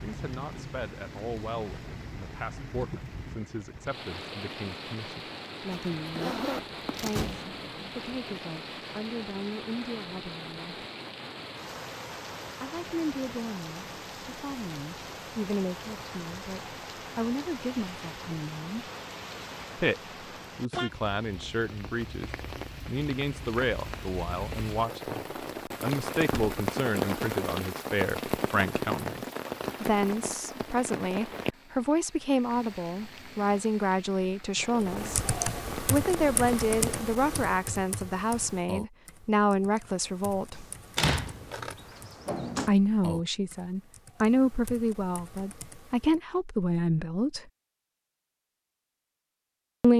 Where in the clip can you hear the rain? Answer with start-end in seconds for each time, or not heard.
0.0-37.1.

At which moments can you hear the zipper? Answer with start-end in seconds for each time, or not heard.
5.7-7.2, 41.1-41.8.